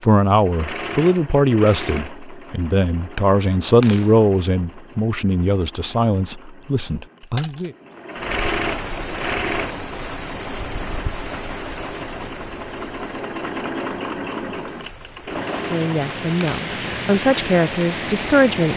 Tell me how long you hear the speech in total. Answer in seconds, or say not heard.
11 s.